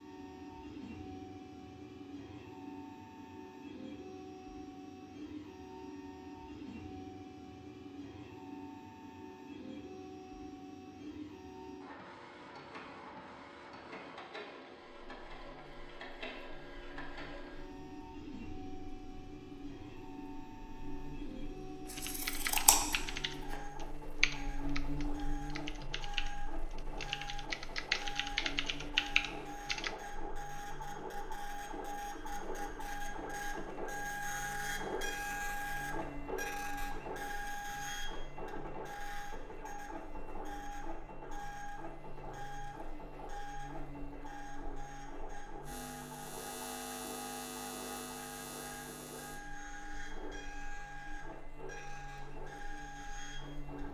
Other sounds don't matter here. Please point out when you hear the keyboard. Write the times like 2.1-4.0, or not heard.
21.9-29.9.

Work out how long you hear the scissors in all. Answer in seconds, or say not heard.
2 s.